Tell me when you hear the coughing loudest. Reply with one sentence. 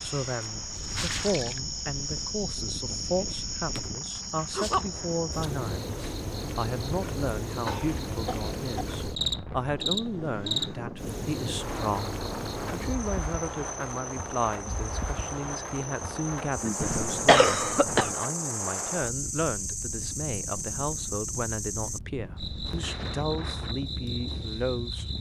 The volume of the coughing peaks at 17 seconds.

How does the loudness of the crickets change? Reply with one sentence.
The volume of the crickets stays about the same.